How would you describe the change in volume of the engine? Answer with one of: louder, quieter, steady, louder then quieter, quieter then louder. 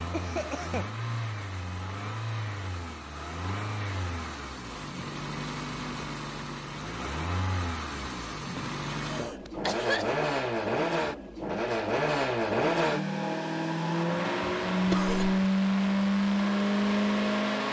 louder.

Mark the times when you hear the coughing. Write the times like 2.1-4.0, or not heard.
0.1-0.9, 8.4-10.2, 14.7-15.4.